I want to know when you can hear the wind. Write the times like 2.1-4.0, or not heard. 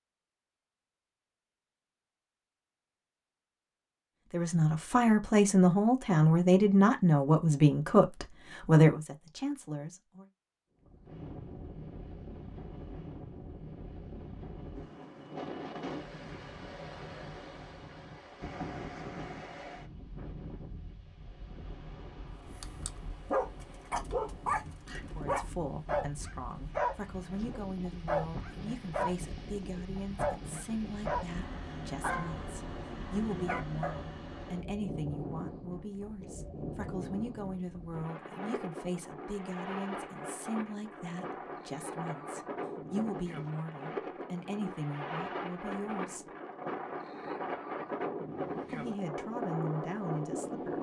10.8-50.7.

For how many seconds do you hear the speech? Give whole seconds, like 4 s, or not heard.
29 s.